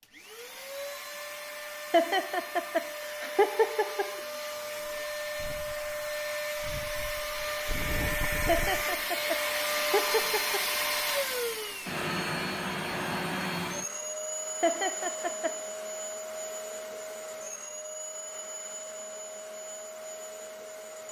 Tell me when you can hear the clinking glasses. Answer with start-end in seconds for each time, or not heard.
not heard.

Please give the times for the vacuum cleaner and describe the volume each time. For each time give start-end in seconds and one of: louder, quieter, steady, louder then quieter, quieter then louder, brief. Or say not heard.
0.0-21.0 louder then quieter.